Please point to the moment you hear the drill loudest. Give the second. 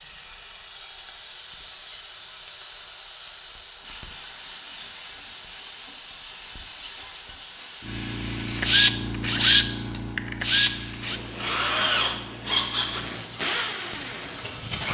9 s.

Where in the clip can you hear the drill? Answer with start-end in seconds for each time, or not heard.
8.6-14.9.